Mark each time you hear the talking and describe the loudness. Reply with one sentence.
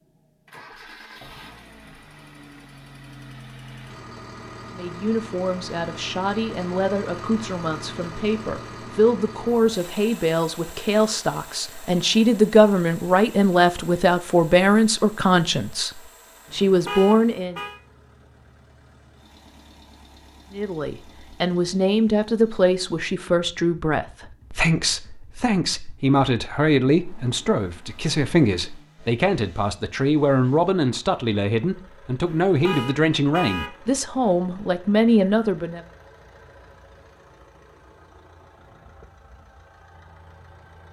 The talking can be heard from 4.7 to 17.6 s, getting louder; and from 20.5 to 35.8 s, at a steady volume.